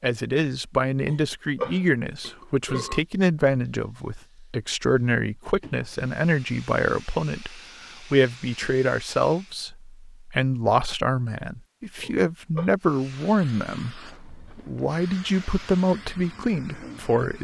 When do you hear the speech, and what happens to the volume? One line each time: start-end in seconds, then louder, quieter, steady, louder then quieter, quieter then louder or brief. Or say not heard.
0.0-17.3 steady.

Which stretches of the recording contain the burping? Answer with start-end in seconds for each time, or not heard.
1.1-3.0, 12.0-12.7.